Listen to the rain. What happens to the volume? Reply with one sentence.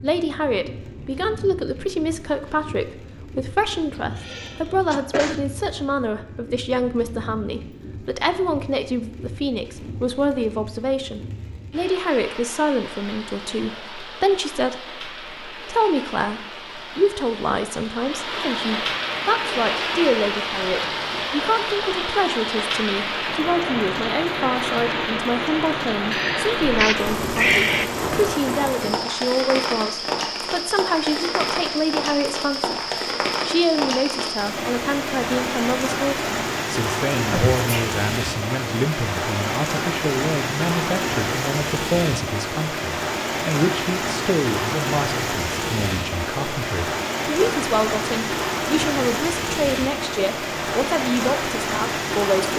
The volume of the rain goes up.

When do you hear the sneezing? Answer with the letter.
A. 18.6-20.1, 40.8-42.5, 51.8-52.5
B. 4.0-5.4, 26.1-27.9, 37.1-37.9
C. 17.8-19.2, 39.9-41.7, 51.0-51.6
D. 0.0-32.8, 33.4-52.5
B.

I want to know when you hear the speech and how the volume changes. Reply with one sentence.
You can hear the speech from 0.0 to 32.8 s, at a steady volume; and from 33.4 to 52.5 s, at a steady volume.